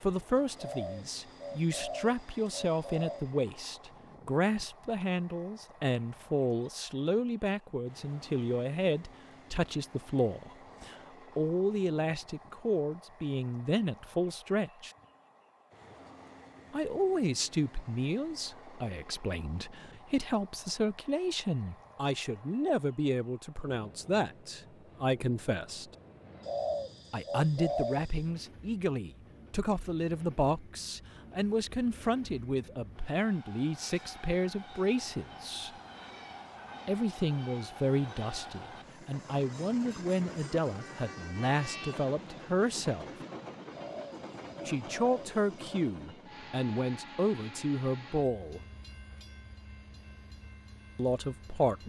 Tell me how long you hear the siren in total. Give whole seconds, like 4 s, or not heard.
not heard.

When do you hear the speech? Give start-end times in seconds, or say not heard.
0.0-14.9, 16.7-25.9, 27.1-35.7, 36.9-43.1, 44.6-48.6, 51.0-51.8.